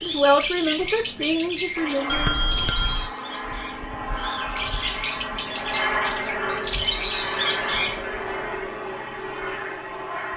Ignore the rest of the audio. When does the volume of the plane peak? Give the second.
6 s.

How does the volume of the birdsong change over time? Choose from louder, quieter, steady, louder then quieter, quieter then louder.
quieter then louder.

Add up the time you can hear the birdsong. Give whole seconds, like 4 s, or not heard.
8 s.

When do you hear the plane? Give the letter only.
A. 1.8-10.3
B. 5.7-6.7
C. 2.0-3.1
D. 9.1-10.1
A.